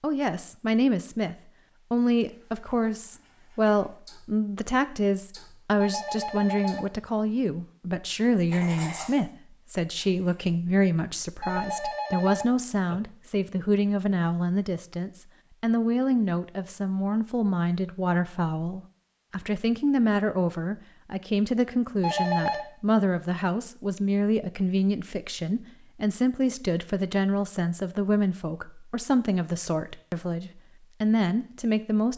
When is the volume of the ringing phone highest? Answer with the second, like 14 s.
22 s.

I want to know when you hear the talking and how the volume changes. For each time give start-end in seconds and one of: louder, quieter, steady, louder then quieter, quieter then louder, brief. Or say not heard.
0.0-32.1 steady.